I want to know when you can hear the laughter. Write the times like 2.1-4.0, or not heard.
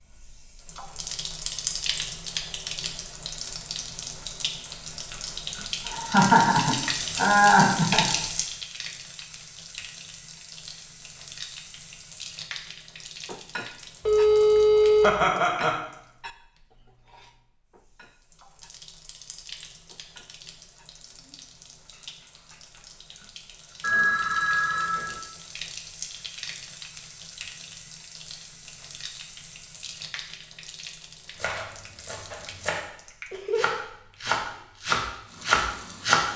5.8-8.1, 15.0-15.8, 33.3-34.3.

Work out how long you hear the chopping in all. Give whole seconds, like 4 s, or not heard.
4 s.